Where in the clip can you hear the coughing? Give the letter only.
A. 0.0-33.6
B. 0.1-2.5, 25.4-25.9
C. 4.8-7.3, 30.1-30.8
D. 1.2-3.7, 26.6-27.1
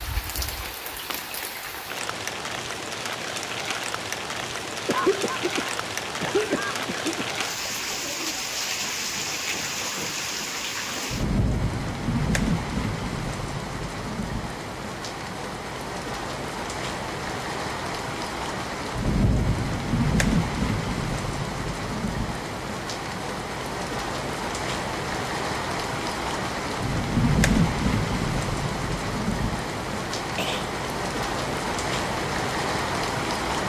C.